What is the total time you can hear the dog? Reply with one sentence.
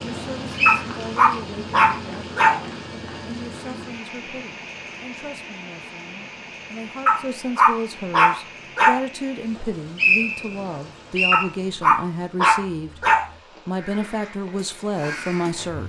You can hear the dog for 6 seconds altogether.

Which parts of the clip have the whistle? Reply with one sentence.
The whistle can be heard from 0.1 to 0.8 s and from 9.6 to 11.4 s.